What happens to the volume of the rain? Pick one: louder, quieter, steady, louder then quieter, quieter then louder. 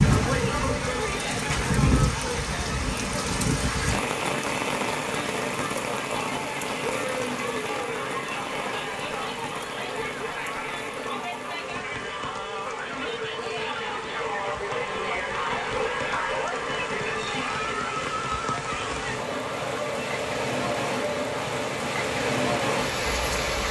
quieter then louder.